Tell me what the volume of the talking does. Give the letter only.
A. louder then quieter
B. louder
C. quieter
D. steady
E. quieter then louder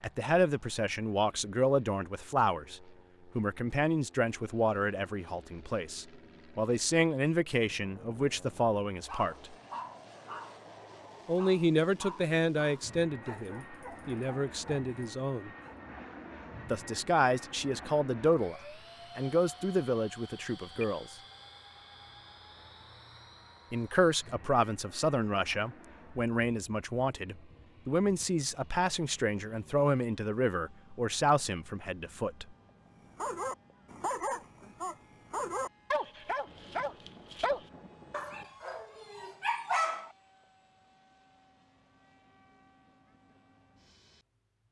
D.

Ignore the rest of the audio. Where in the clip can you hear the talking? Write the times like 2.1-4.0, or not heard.
0.0-9.6, 11.2-15.5, 16.7-21.1, 23.7-32.5.